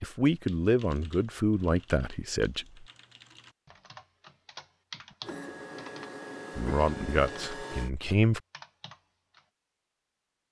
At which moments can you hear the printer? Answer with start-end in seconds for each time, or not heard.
5.2-7.9.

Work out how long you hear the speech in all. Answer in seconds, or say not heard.
5 s.